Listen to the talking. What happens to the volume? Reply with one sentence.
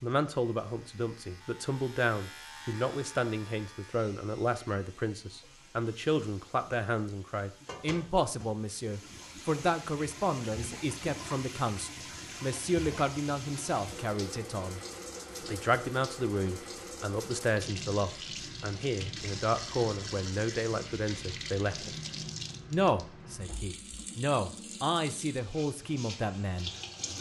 The volume of the talking stays about the same.